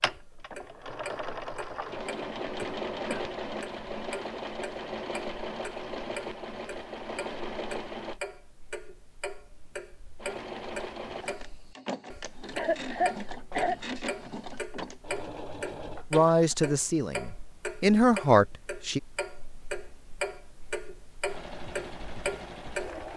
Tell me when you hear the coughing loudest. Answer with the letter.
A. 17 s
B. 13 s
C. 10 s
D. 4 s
B.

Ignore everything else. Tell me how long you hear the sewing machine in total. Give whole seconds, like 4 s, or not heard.
16 s.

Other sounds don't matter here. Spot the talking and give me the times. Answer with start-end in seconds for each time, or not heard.
16.1-19.0.